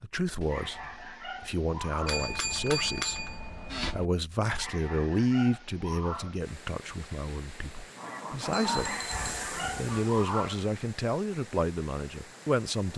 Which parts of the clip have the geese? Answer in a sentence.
You can hear the geese from 8.0 to 10.1 s.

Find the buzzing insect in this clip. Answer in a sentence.
The buzzing insect can't be heard in this clip.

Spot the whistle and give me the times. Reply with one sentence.
You can't hear the whistle here.